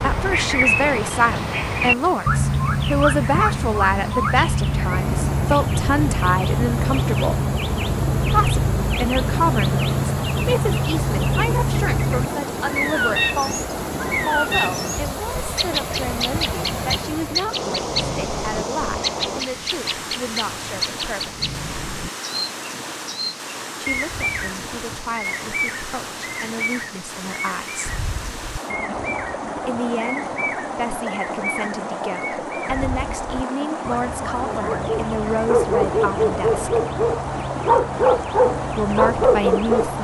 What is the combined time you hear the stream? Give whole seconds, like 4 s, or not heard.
40 s.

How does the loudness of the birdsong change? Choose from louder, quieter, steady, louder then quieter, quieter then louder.
quieter.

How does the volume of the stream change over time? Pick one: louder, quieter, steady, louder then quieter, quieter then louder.
steady.